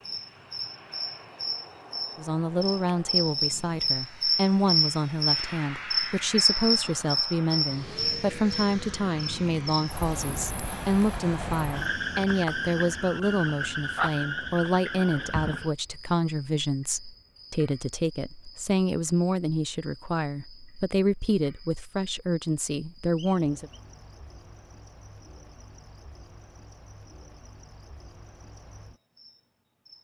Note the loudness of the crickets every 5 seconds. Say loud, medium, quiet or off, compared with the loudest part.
loud, loud, medium, quiet, quiet, quiet.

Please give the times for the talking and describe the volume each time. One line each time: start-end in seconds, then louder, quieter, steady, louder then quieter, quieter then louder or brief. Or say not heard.
2.1-23.7 steady.